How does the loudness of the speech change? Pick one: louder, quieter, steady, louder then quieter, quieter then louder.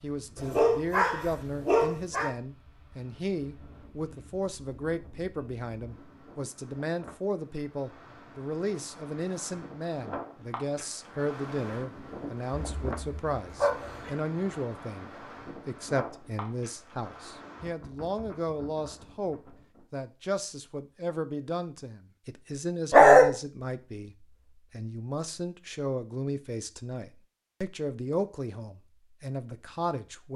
steady.